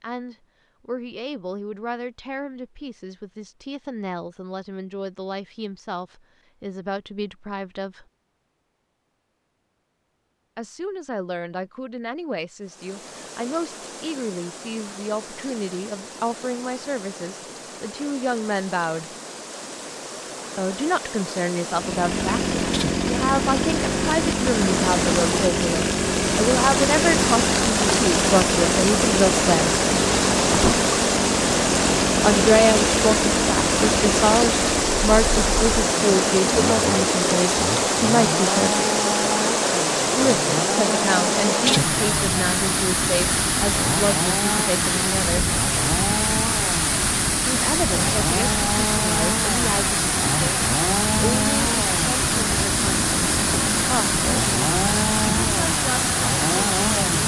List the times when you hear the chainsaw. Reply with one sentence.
You can hear the chainsaw from 21.7 to 57.2 s.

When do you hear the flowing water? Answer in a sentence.
The flowing water can be heard from 12.6 to 57.2 s.